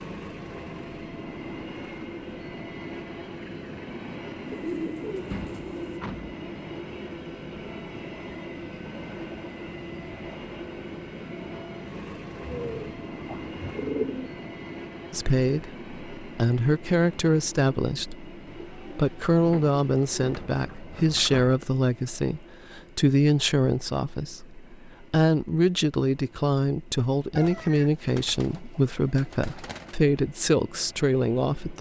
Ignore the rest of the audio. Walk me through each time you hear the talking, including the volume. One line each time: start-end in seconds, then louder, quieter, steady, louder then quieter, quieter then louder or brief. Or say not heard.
15.1-31.7 steady.